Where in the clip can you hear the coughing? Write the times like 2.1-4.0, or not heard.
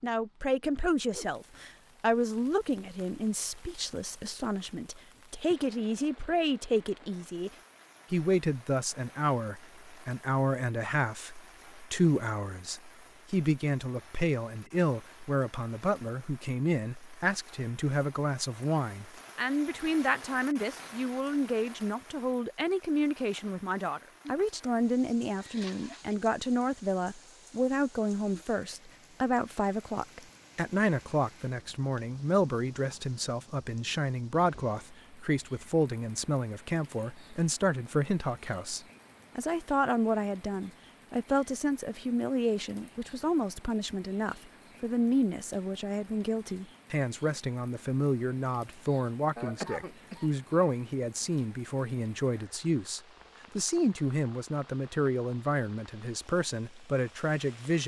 24.2-26.1, 49.4-50.3.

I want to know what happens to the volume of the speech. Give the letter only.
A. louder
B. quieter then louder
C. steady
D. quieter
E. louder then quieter
C.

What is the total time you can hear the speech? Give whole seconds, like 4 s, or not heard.
57 s.